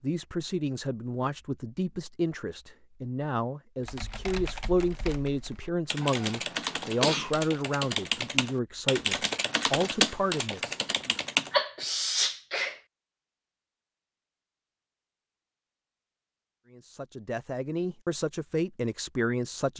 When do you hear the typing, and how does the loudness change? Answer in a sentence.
The typing can be heard from 3.8 to 11.5 s, getting louder.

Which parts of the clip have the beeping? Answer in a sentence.
The beeping can't be heard in this clip.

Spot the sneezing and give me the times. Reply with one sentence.
The sneezing can be heard from 6.0 to 7.3 s and from 11.5 to 12.8 s.